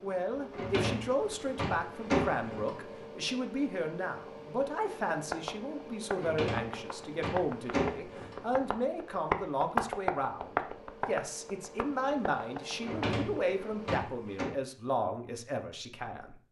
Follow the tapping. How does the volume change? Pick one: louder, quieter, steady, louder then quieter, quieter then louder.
louder then quieter.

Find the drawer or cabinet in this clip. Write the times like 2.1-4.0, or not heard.
0.5-2.8, 6.2-8.4, 12.8-14.5.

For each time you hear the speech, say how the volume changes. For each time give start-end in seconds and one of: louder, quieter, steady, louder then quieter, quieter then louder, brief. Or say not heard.
0.0-16.4 steady.